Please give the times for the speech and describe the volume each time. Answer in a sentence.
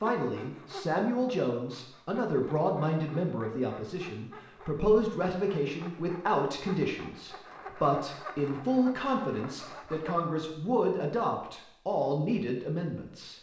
You can hear the speech from 0.0 to 13.3 s, at a steady volume.